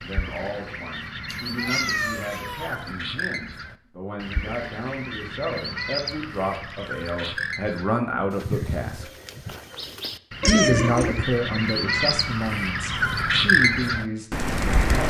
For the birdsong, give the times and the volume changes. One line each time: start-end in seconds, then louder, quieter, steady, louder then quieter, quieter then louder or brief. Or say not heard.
0.0-15.0 louder.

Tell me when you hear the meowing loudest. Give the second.
11 s.